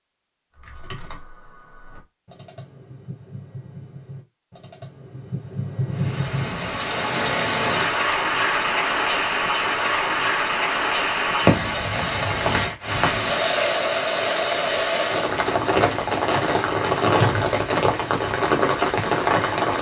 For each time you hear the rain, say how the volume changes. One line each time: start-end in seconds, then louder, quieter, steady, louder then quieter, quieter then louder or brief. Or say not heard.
5.9-19.7 steady.